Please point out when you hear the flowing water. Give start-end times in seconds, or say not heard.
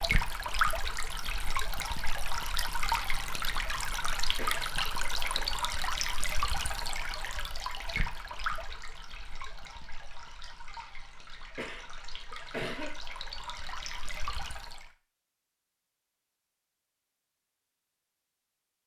0.0-14.9.